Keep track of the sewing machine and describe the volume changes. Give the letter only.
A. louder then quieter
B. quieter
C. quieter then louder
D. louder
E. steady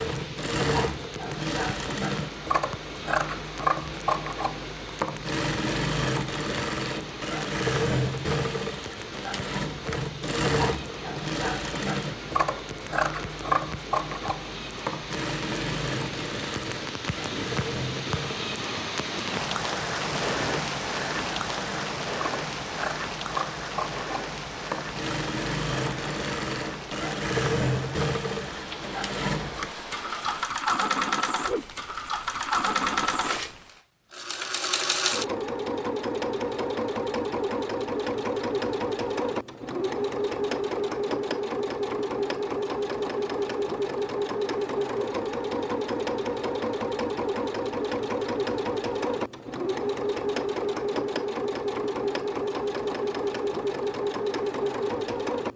E.